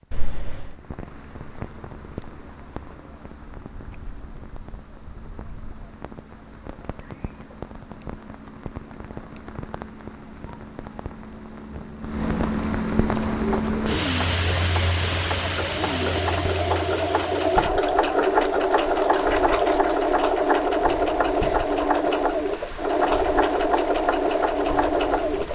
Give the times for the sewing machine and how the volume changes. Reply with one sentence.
You can hear the sewing machine from 13.1 to 25.5 s, getting louder.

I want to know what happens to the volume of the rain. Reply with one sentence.
The volume of the rain goes up, then down.